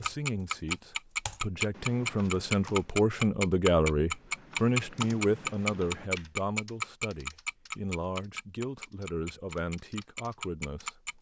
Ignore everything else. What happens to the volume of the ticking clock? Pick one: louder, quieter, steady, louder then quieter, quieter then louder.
quieter.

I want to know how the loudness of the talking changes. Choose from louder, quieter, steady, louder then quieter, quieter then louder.
louder then quieter.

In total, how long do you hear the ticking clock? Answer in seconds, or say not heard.
11 s.